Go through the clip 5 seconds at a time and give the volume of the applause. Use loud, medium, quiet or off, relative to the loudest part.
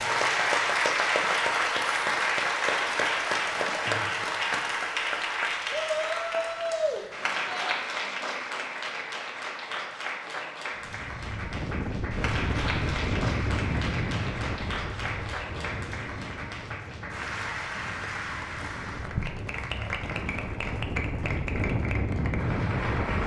loud, medium, medium, medium, medium.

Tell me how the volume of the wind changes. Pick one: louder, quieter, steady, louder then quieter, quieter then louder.
quieter then louder.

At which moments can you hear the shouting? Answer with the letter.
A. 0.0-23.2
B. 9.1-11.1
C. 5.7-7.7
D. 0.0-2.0
C.